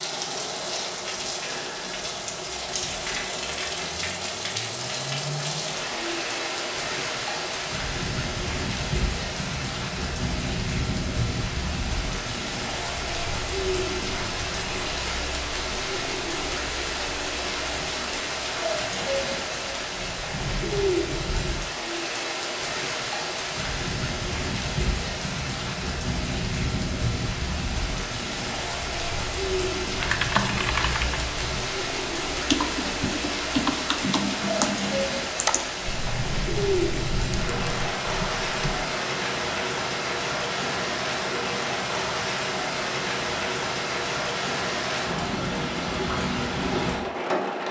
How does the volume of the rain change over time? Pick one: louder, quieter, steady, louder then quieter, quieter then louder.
steady.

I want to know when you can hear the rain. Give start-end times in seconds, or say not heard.
0.0-47.6.